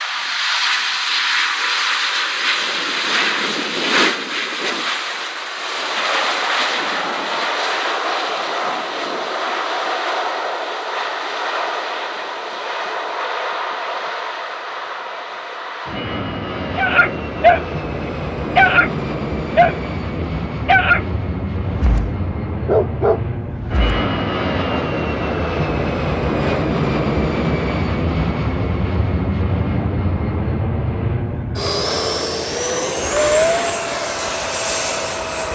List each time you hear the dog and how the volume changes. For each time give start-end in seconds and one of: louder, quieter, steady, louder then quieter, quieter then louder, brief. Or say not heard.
16.8-24.0 quieter then louder.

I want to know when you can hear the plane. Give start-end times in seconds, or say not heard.
0.0-35.5.